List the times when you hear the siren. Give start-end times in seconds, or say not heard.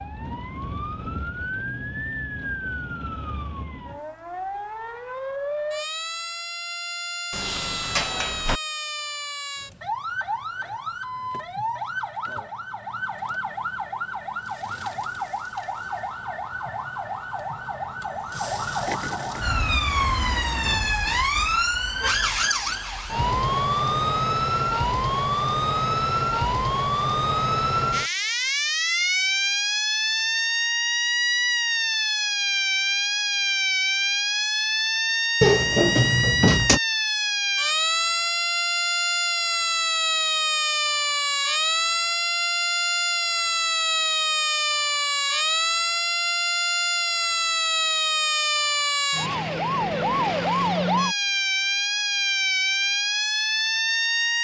0.0-54.3.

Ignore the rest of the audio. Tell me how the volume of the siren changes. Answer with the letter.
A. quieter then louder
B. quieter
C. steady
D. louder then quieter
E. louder
E.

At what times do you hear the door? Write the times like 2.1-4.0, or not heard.
7.3-8.6, 35.4-36.8.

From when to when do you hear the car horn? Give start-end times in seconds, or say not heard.
not heard.